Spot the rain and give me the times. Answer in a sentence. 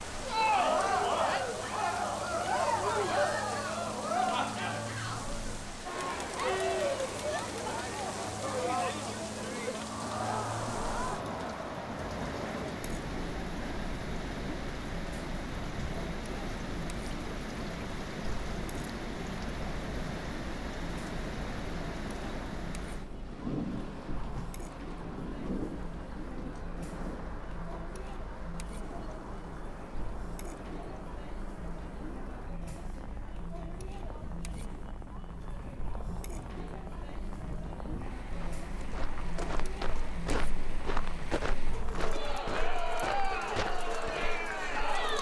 You can hear the rain from 0.0 to 45.1 s.